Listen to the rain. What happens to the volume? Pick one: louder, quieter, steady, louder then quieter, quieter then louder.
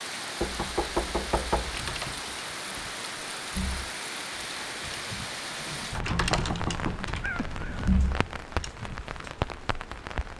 steady.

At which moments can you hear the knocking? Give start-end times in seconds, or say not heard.
0.4-1.8, 5.9-8.0.